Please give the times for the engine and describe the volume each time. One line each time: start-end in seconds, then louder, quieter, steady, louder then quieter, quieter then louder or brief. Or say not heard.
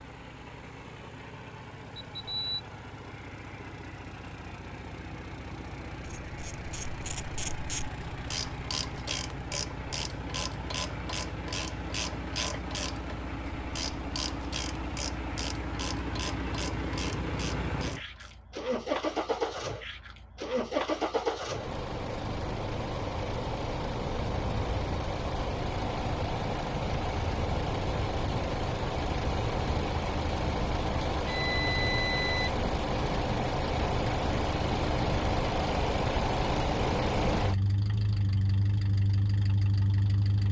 0.0-40.4 louder.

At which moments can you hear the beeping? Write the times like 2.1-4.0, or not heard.
2.1-2.6, 31.1-32.5.